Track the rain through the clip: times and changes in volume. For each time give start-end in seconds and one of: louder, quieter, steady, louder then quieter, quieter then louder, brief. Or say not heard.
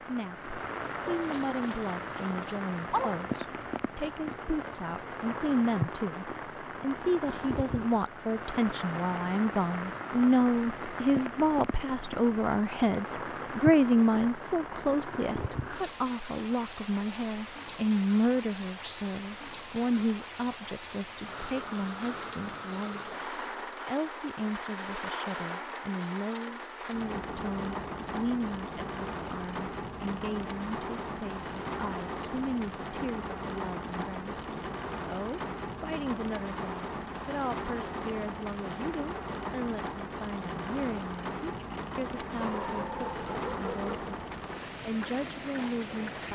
0.0-46.3 steady.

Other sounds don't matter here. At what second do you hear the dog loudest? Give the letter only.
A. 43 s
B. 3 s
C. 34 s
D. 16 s
B.